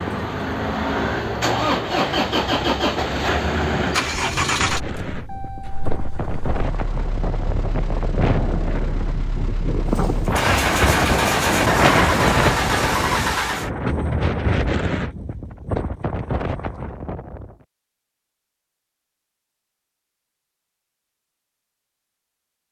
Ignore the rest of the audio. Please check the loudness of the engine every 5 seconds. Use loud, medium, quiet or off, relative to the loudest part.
loud, quiet, loud, off, off.